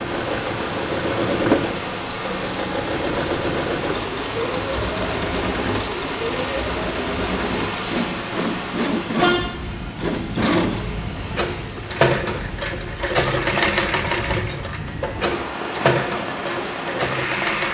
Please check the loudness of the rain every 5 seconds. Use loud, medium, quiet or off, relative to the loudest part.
loud, loud, medium, loud.